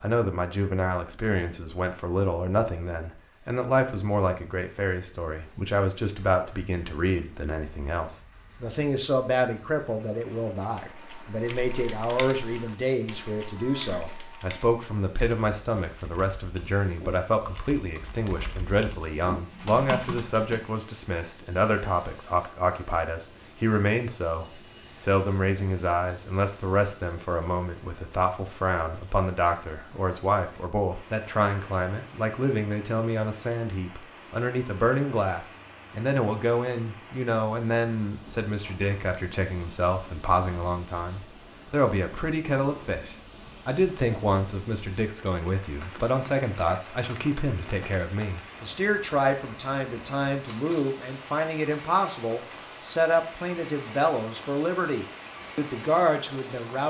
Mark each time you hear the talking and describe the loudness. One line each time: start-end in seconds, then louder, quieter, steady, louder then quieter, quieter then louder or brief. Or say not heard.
0.0-56.8 steady.